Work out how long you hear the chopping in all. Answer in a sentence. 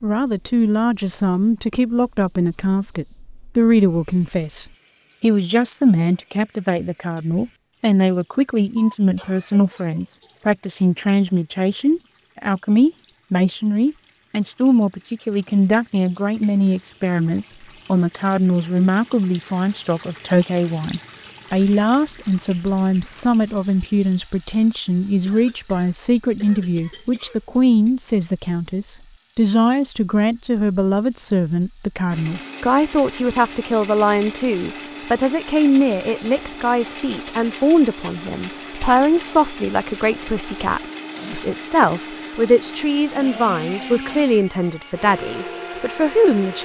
You can't hear the chopping here.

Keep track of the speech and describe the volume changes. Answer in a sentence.
The volume of the speech stays about the same.